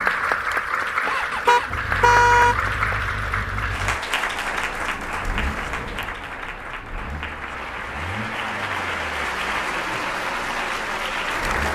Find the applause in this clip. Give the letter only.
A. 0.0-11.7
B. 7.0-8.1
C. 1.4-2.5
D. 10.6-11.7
A.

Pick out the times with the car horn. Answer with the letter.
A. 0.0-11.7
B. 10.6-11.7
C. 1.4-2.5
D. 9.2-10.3
C.